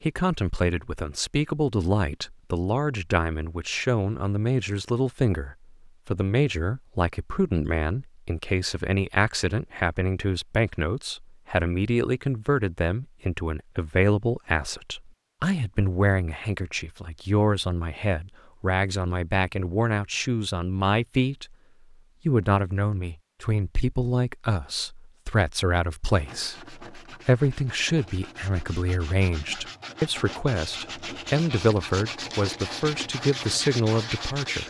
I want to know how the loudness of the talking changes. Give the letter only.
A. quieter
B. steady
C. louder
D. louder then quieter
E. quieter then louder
B.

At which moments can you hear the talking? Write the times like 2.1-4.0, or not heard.
0.0-21.6, 22.2-34.6.